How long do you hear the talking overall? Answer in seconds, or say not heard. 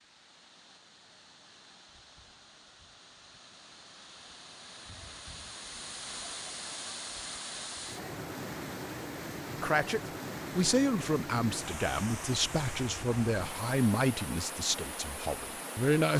7 s.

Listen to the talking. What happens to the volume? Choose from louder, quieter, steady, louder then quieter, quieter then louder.
quieter.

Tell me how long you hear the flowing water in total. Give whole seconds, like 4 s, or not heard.
16 s.